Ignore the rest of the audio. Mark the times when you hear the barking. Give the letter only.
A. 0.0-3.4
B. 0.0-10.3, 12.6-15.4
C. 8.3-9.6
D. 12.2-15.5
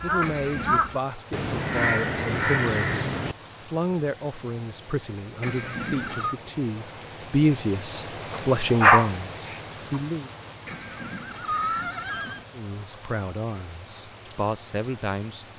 C.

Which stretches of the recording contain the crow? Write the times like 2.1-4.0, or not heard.
0.0-3.4.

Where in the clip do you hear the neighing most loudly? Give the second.
12 s.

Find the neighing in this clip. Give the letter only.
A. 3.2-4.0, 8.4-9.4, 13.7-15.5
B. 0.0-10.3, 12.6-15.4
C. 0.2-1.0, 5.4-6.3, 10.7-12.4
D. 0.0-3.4
C.